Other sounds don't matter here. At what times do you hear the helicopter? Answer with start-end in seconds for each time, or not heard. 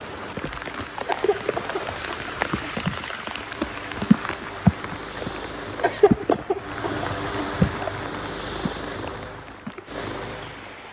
0.2-10.8.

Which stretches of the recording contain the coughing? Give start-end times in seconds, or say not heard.
1.1-3.0, 5.8-7.8.